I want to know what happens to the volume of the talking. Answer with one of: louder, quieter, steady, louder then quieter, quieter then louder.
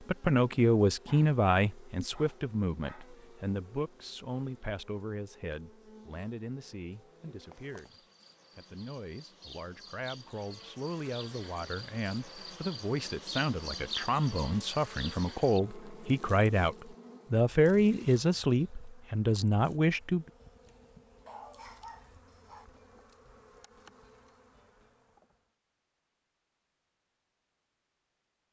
quieter then louder.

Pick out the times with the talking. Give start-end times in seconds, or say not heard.
0.1-20.2.